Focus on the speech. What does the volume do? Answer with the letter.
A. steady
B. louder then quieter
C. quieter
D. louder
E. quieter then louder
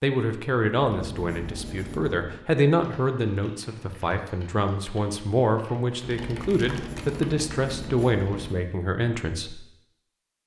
A.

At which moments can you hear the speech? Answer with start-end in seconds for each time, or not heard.
0.0-9.6.